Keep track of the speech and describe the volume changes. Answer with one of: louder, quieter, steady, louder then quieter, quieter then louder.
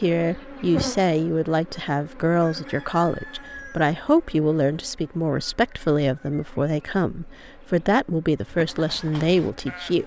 steady.